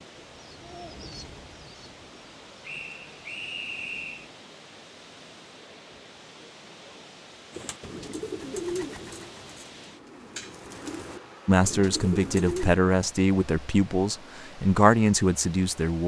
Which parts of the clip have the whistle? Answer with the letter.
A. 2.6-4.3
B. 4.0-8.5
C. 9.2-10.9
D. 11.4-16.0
A.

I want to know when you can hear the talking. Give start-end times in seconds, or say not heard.
11.4-16.0.